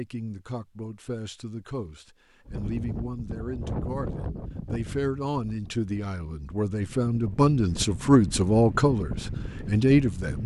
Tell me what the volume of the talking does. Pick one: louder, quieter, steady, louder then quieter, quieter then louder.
louder.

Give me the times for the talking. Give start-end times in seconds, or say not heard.
0.0-10.4.